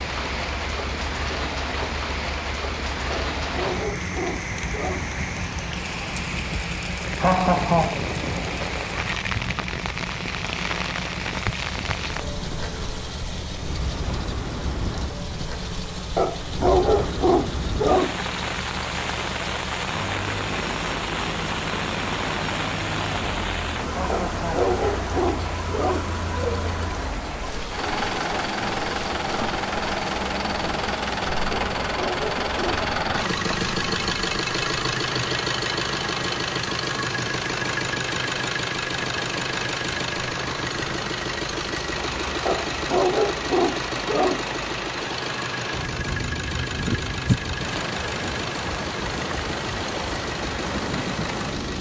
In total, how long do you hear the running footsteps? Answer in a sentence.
You can't hear the running footsteps here.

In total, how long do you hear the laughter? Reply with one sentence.
You can hear the laughter for 2 seconds altogether.